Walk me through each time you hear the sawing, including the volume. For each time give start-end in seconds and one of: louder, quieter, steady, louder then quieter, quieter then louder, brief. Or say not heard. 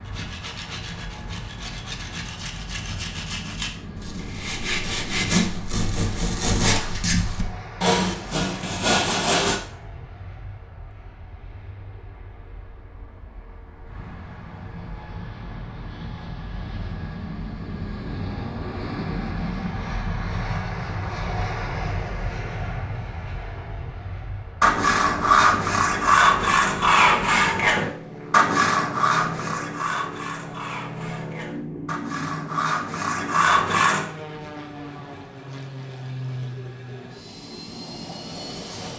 0.0-9.6 louder
24.6-34.0 quieter then louder.